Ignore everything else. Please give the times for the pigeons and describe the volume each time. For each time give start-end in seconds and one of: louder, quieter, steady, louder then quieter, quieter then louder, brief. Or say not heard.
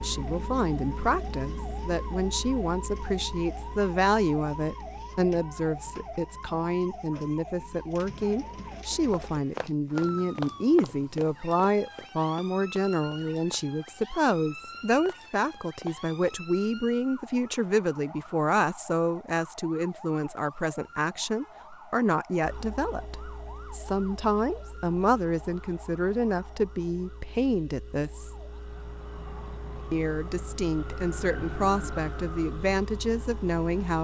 not heard.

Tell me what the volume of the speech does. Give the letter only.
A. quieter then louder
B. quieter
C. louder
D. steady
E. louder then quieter
D.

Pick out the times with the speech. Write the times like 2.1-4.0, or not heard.
0.0-28.3, 29.9-34.0.